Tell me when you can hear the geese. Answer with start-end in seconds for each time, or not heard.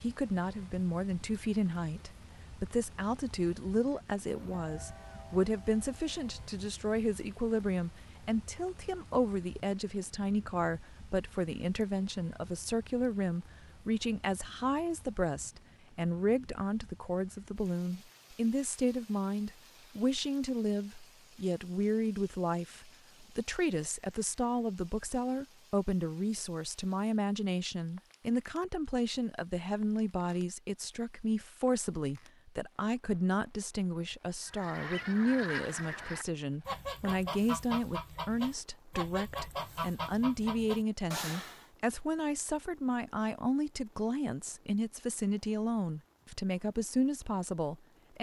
34.5-41.7.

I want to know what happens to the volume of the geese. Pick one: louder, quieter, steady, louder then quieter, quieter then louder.
steady.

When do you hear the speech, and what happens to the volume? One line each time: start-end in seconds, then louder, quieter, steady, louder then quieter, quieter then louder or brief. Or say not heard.
0.0-48.1 steady.